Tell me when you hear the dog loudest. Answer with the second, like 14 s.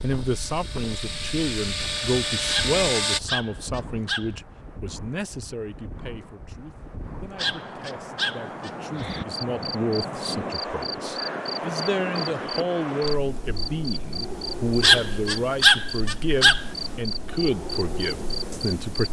16 s.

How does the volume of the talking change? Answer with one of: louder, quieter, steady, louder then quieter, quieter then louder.
quieter then louder.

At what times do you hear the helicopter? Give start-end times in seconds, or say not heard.
0.0-3.2.